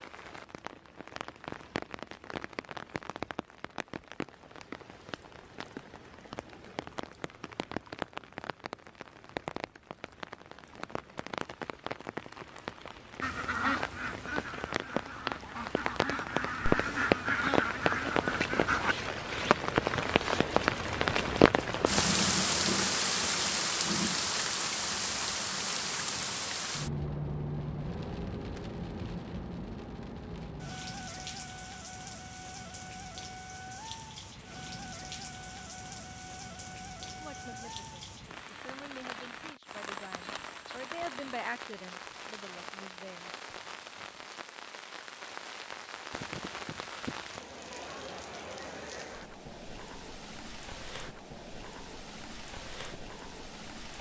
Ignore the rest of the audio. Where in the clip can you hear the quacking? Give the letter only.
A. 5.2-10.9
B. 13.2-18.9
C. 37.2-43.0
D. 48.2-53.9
B.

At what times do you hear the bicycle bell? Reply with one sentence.
You can't hear the bicycle bell here.